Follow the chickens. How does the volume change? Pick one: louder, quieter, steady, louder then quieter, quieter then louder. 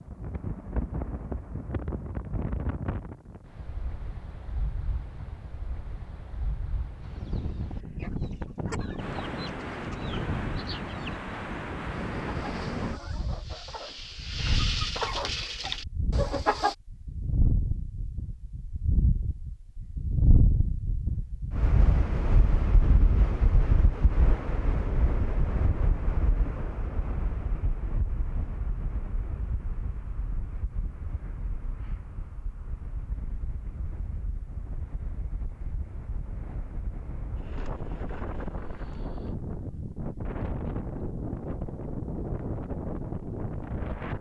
louder.